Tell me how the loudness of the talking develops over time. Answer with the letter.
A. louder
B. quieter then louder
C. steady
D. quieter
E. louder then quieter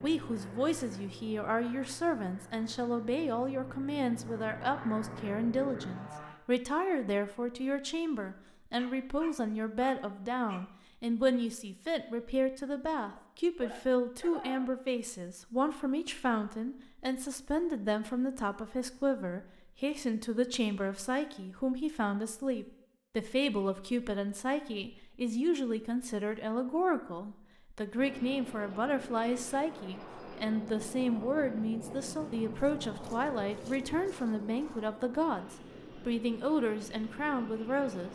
C.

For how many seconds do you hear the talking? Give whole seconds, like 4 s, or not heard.
38 s.